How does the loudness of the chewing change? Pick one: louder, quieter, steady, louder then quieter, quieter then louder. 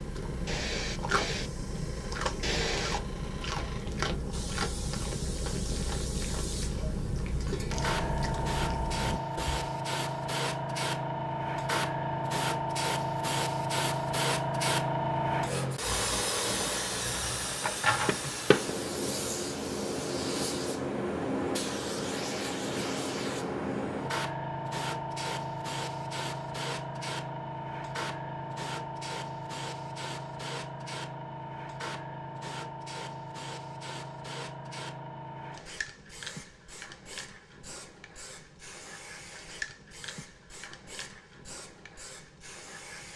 steady.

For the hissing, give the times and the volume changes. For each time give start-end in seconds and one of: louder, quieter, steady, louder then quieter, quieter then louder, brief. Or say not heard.
0.0-43.1 louder then quieter.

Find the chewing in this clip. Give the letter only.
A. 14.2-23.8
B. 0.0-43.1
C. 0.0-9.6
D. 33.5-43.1
C.